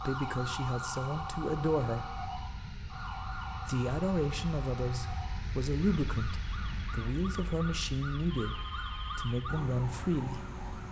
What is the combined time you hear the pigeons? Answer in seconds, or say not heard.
not heard.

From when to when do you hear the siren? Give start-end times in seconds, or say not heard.
0.0-10.8.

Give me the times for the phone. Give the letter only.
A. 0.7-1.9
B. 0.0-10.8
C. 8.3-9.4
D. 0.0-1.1
C.